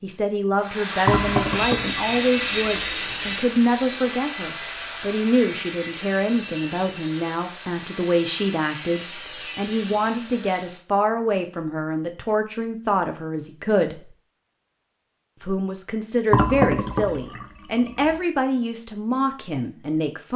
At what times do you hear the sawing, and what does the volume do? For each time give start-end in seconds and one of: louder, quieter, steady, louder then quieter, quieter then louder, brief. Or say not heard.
0.6-10.8 quieter.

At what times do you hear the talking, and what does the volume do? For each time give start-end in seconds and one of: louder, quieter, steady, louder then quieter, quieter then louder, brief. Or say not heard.
0.0-14.1 steady
15.4-20.3 steady.